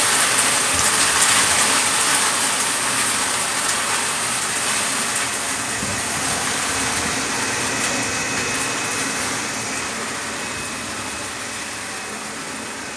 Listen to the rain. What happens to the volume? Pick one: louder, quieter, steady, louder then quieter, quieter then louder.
quieter.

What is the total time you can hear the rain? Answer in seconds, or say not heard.
13 s.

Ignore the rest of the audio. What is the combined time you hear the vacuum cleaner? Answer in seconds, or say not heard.
13 s.